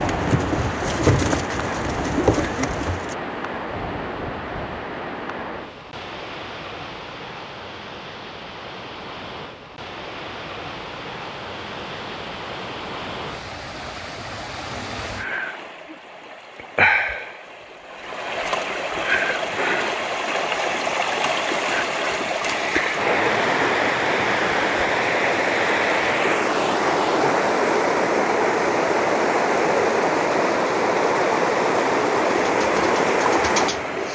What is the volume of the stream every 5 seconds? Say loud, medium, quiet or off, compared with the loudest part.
medium, quiet, quiet, medium, loud, loud, loud.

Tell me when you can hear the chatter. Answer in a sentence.
You can't hear the chatter here.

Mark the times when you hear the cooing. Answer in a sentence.
You can hear the cooing from 0.0 to 3.1 s and from 32.3 to 34.1 s.